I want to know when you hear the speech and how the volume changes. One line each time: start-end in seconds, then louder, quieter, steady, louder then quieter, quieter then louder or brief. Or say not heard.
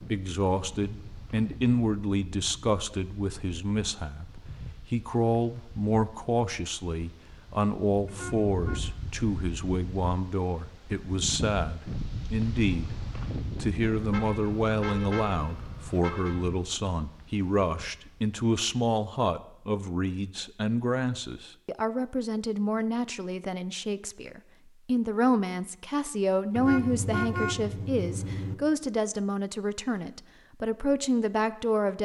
0.0-31.9 steady.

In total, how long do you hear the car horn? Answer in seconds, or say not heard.
5 s.